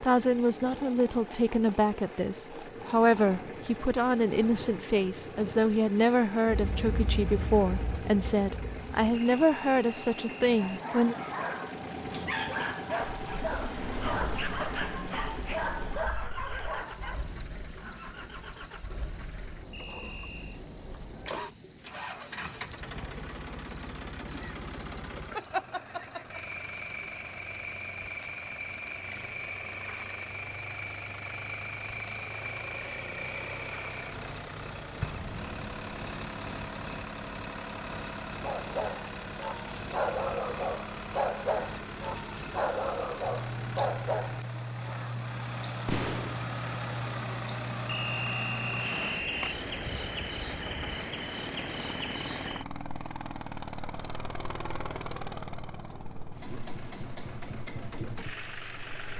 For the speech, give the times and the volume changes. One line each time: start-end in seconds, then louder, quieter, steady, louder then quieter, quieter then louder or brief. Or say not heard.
0.0-11.2 steady.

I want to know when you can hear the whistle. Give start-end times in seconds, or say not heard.
9.2-10.8, 19.7-20.6, 47.9-49.6.